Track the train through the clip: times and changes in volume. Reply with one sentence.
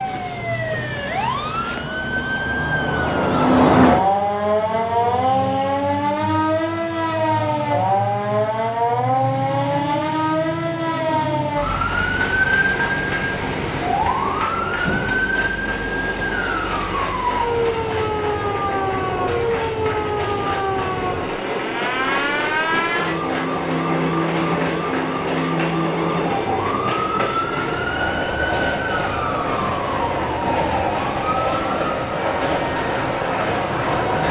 You can hear the train from 0.0 to 34.2 s, getting louder.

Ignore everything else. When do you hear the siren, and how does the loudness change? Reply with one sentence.
You can hear the siren from 0.0 to 34.2 s, getting quieter.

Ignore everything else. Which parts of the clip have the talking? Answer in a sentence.
You can't hear the talking here.